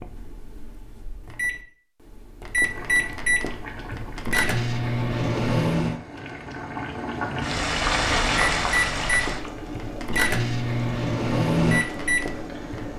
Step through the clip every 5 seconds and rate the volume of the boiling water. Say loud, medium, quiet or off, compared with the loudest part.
quiet, loud, medium.